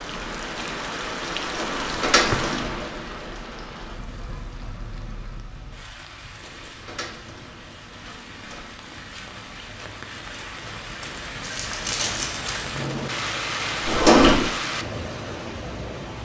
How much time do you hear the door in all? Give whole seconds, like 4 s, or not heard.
5 s.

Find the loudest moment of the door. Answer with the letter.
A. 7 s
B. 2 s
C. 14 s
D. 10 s
C.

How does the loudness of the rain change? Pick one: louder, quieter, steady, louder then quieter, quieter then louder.
quieter then louder.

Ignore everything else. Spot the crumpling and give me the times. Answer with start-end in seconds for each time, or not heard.
11.4-12.7.